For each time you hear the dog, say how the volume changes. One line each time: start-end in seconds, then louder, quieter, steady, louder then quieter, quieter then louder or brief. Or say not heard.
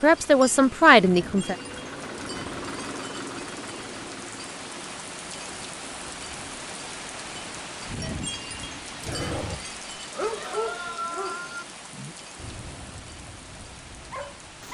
9.0-14.6 quieter.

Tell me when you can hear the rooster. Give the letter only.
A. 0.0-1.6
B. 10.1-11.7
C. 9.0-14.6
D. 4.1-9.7
B.